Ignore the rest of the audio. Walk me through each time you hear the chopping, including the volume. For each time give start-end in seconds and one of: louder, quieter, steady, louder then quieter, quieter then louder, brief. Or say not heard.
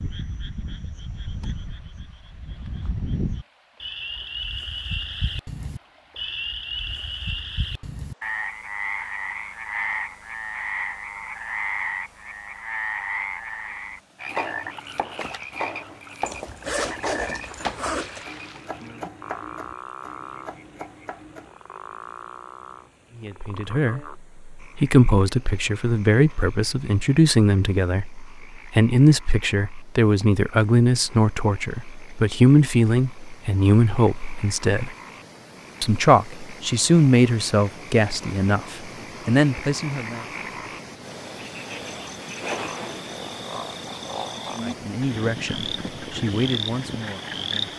14.2-21.5 quieter.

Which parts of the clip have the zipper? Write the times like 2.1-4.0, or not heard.
16.2-18.2, 42.4-43.1.